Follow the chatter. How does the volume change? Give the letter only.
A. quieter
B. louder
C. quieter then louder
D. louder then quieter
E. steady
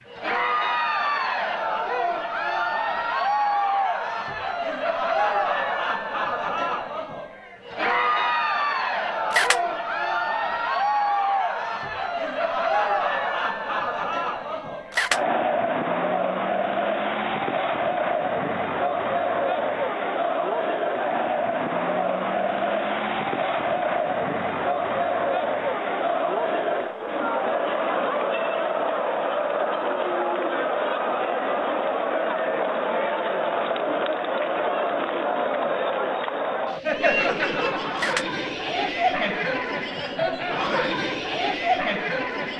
E.